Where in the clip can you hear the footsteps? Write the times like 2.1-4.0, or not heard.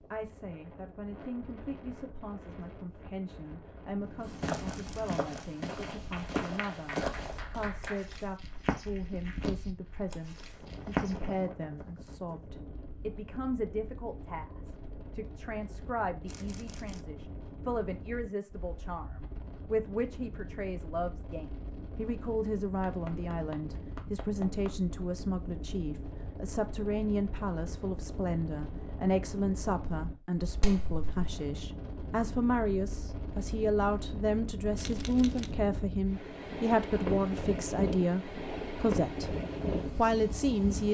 4.2-11.4.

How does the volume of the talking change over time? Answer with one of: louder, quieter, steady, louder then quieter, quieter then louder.
louder.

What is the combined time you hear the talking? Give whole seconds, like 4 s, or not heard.
41 s.